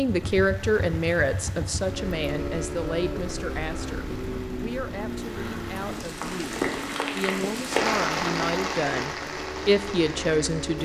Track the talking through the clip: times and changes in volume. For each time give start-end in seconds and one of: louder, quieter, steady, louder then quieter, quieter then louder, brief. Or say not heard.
0.0-10.8 quieter then louder.